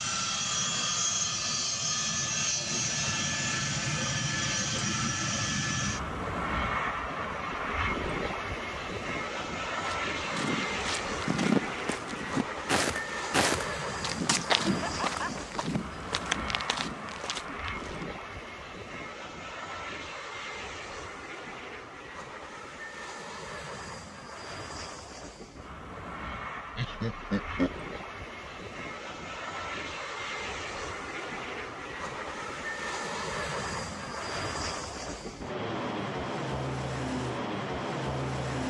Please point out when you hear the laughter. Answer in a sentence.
The laughter can be heard from 14.7 to 15.4 s and from 26.8 to 27.8 s.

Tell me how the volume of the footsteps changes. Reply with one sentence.
The volume of the footsteps goes down.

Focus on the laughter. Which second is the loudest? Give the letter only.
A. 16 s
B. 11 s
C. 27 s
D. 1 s
C.